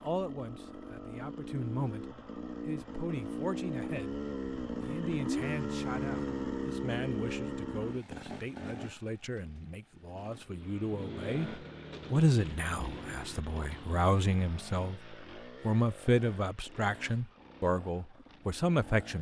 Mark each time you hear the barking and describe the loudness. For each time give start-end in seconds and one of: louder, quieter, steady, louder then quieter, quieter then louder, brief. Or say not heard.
not heard.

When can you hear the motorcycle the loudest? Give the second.
6 s.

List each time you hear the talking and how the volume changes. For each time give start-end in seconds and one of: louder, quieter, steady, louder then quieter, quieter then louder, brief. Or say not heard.
0.0-19.1 louder.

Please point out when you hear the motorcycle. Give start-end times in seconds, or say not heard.
0.0-19.1.